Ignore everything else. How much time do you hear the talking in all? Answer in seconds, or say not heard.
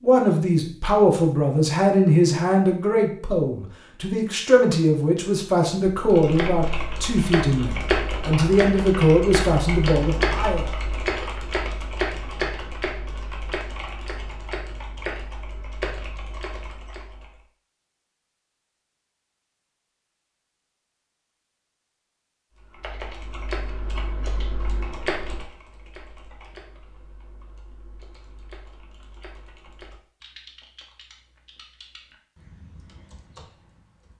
11 s.